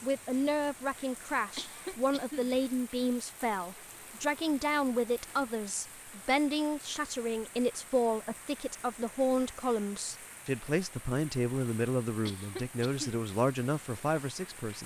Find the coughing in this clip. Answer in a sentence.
The coughing can be heard from 1.6 to 2.5 s and from 12.2 to 13.2 s.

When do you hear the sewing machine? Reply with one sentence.
The sewing machine can't be heard in this clip.